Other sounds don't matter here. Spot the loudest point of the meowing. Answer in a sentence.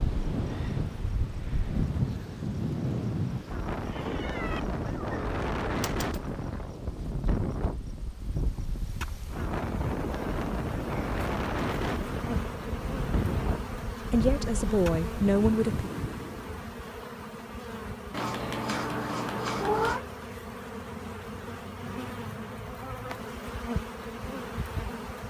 The loudest moment of the meowing is at 20 seconds.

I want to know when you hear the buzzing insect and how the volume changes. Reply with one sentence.
The buzzing insect can be heard from 0.0 to 25.2 s, getting louder.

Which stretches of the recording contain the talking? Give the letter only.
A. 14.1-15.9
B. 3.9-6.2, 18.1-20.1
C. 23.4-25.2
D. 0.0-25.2
A.